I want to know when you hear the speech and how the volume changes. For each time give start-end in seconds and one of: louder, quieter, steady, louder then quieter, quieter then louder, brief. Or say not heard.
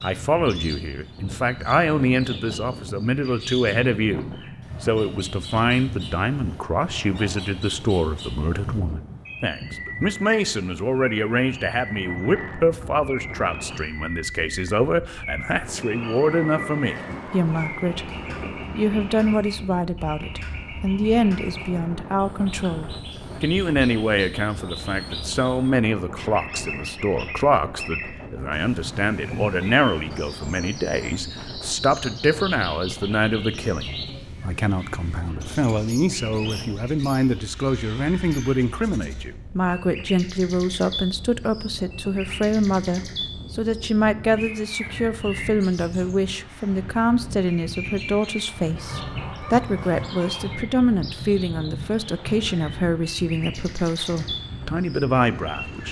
0.0-55.8 steady.